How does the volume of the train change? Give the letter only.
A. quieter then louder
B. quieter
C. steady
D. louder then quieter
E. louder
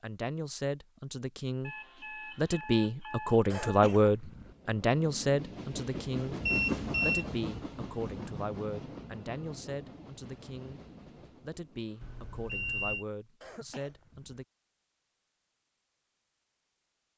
D.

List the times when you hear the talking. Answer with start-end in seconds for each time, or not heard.
0.0-1.8, 2.4-6.3, 7.0-10.8, 11.4-14.4.